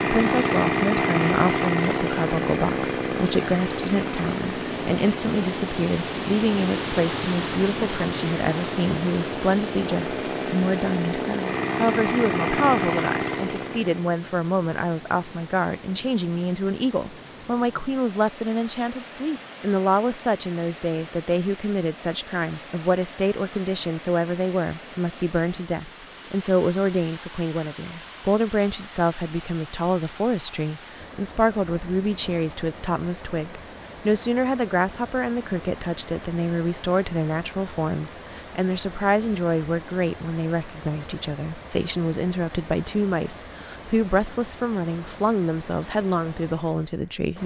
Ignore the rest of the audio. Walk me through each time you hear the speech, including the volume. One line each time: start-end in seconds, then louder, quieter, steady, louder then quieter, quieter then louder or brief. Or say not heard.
0.0-47.4 steady.